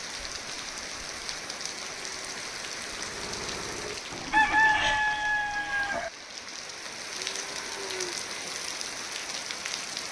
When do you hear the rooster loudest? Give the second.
5 s.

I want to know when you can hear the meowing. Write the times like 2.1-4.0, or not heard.
not heard.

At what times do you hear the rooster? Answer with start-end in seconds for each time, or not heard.
4.3-6.1.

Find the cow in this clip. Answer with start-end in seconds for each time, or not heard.
7.2-8.2.